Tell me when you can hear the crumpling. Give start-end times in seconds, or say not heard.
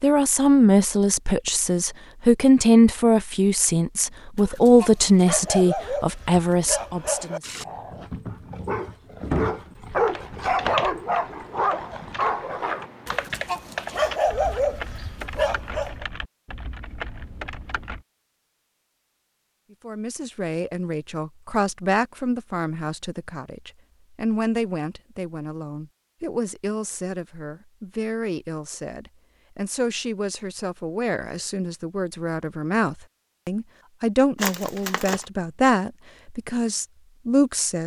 34.4-35.2.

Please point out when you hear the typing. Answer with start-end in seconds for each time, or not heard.
9.9-18.1.